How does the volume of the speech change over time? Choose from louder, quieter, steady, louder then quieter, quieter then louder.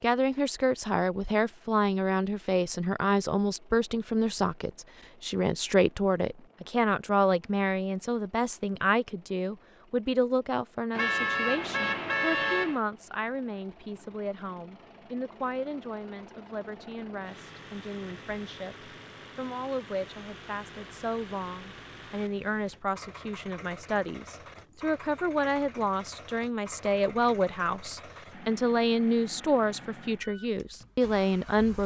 quieter then louder.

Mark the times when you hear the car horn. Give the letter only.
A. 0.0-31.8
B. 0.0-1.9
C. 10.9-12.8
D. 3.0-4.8
C.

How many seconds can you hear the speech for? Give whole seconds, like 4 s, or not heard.
32 s.